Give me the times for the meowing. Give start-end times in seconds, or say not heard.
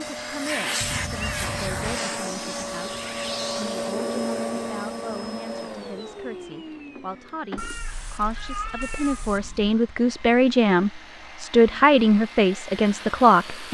0.8-2.0, 7.5-9.8.